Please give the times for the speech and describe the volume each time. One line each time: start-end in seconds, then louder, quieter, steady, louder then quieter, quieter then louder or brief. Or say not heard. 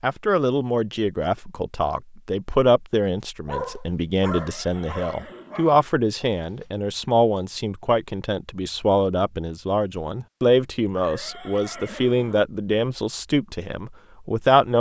0.0-14.7 steady.